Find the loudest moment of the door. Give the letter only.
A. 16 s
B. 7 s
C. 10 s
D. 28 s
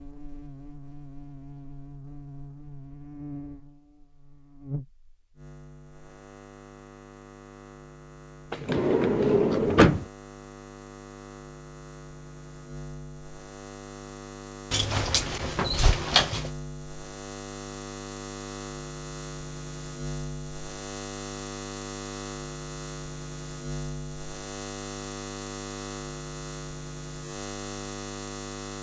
C.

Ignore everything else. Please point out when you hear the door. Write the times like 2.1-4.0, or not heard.
8.5-10.1, 14.7-16.5.